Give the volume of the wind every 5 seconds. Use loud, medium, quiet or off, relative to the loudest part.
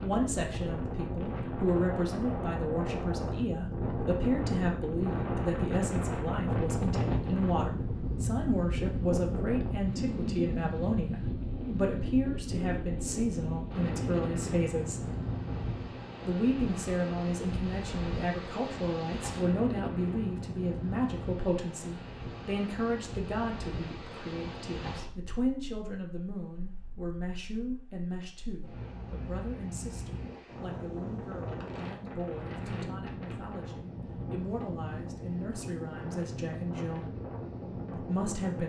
loud, loud, loud, medium, medium, quiet, medium, medium.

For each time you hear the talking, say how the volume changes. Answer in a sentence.
You can hear the talking from 0.0 to 15.1 s, at a steady volume; from 16.2 to 37.0 s, getting quieter; and briefly from 37.9 to 38.6 s.